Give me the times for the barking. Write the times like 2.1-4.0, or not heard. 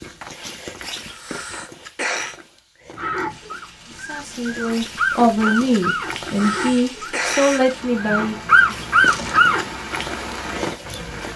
2.9-9.7.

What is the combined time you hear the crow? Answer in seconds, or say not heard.
not heard.